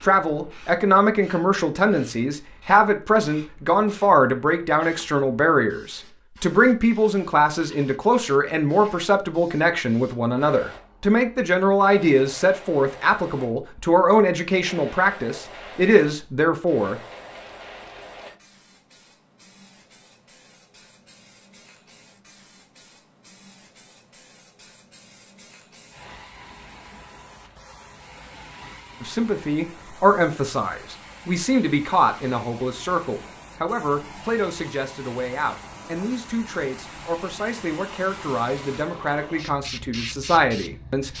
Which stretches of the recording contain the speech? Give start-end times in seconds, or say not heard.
0.0-17.0, 29.0-41.1.